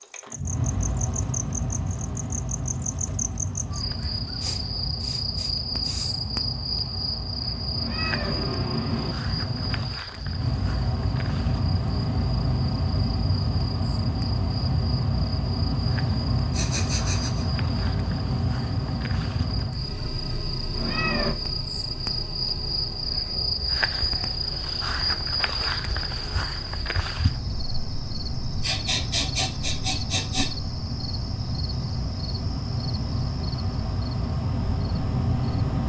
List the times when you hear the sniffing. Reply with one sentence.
You can hear the sniffing from 4.4 to 6.2 s, from 16.5 to 17.4 s and from 28.6 to 30.5 s.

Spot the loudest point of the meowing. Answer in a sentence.
The loudest moment of the meowing is at 21 seconds.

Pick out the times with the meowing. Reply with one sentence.
The meowing can be heard from 7.8 to 9.2 s and from 20.8 to 21.4 s.